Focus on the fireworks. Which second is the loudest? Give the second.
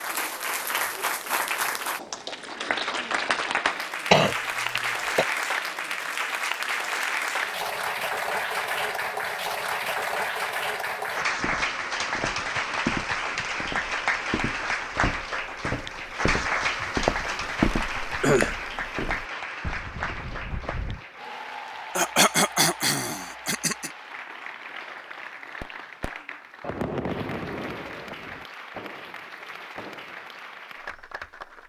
27 s.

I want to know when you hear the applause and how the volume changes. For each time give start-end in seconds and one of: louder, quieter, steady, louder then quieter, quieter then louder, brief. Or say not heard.
0.0-31.6 quieter.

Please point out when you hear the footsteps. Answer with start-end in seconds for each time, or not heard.
11.2-21.0.